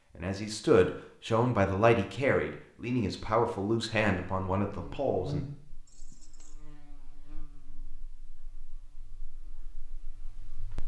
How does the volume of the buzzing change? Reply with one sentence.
The volume of the buzzing goes down.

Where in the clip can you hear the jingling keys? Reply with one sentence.
You can hear the jingling keys from 5.8 to 6.7 s.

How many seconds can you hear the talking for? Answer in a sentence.
The talking can be heard for 5 seconds in total.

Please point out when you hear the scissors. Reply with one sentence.
You can't hear the scissors here.